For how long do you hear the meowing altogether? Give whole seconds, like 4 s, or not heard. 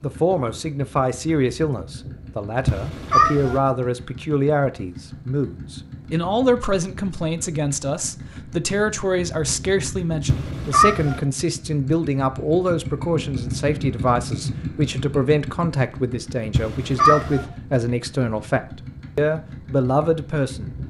3 s.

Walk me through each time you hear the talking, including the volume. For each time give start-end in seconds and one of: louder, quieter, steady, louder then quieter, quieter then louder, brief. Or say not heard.
0.0-20.8 steady.